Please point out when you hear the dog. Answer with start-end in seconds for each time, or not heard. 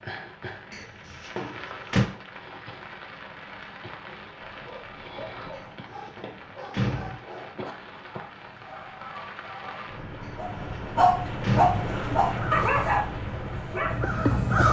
4.4-14.2.